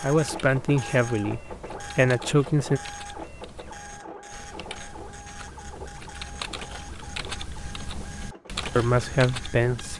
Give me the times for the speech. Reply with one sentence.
You can hear the speech from 0.0 to 2.8 s and from 8.8 to 9.9 s.